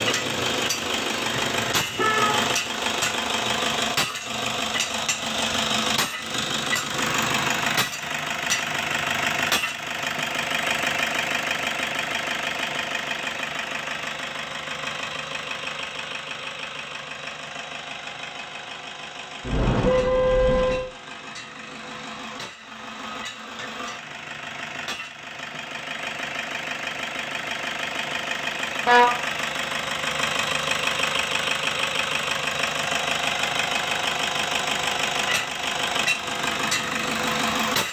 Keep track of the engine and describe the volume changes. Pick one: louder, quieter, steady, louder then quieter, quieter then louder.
quieter then louder.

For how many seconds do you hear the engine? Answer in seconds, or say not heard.
38 s.